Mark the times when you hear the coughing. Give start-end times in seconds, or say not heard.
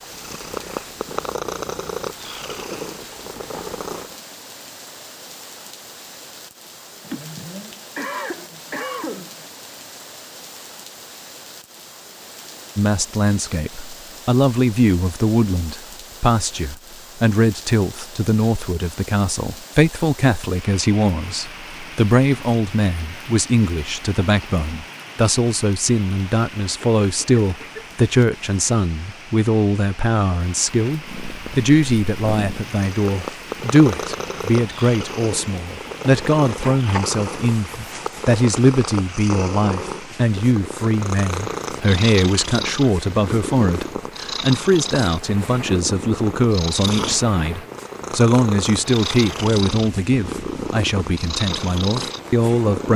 7.0-9.5, 26.8-27.9.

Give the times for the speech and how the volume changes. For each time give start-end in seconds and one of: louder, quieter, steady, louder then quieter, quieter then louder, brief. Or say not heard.
12.8-52.9 steady.